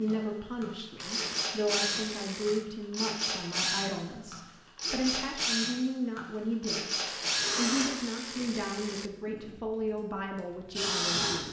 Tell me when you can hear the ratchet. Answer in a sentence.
The ratchet can be heard from 0.9 to 2.6 s and from 7.0 to 9.1 s.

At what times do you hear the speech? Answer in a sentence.
The speech can be heard from 0.0 to 11.4 s.